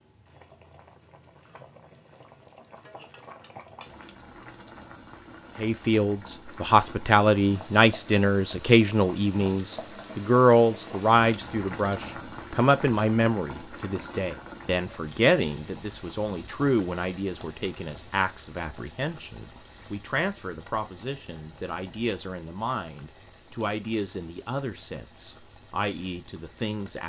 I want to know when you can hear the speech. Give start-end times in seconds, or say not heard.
5.6-27.0.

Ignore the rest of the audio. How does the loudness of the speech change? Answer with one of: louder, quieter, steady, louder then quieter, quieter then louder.
quieter.